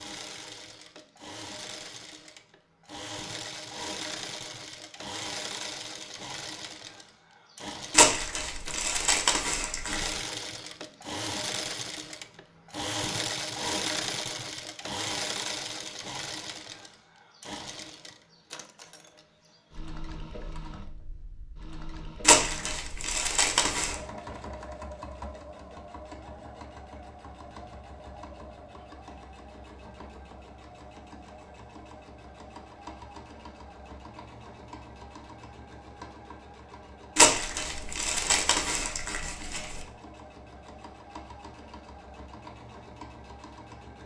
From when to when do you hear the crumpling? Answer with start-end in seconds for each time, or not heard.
7.9-10.2, 22.2-23.9, 37.1-39.8.